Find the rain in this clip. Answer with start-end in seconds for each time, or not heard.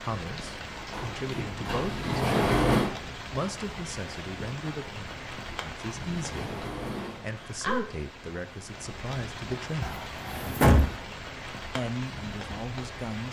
0.0-13.2.